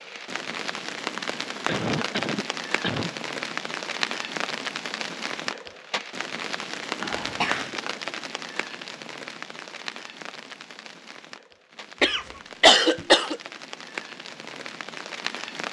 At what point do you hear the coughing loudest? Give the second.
13 s.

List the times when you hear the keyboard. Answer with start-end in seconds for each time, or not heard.
not heard.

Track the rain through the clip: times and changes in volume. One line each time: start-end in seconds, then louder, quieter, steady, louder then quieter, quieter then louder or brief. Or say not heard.
0.0-15.6 quieter.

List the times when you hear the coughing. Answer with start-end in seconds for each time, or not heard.
1.6-3.1, 7.0-7.8, 12.0-13.4.